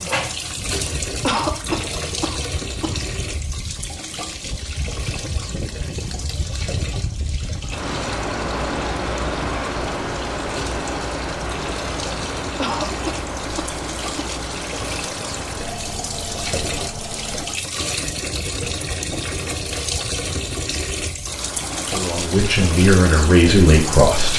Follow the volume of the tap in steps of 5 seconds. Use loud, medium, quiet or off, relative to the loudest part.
loud, medium, medium, loud, loud.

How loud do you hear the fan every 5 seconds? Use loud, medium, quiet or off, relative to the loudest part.
medium, loud, loud, medium, medium.